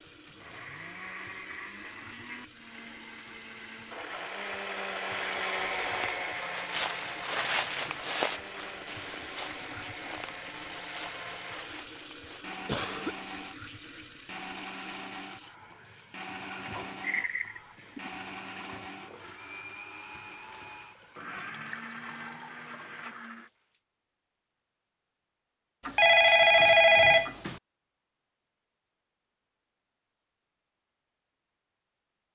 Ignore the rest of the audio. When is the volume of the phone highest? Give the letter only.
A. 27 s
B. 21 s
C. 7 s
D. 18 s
A.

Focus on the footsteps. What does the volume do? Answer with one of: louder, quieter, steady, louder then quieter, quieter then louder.
quieter.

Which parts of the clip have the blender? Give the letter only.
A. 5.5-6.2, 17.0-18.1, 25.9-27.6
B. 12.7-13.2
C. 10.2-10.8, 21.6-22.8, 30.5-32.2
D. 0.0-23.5
D.